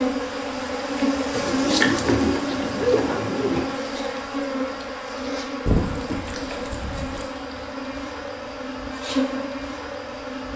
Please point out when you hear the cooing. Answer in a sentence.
You can hear the cooing from 1.3 to 3.6 s and from 5.7 to 7.3 s.